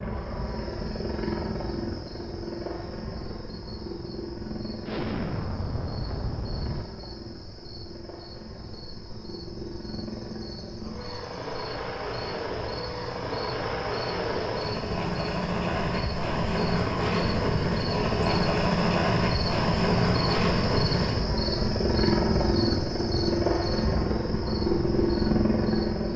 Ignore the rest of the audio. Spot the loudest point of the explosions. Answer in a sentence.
The loudest moment of the explosions is at 5 seconds.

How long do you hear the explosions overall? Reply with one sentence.
The explosions can be heard for 2 seconds in total.